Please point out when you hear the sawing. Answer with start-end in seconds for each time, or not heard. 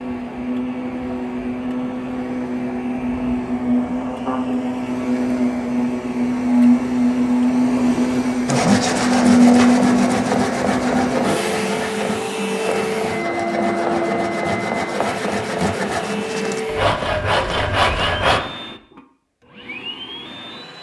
8.4-18.4.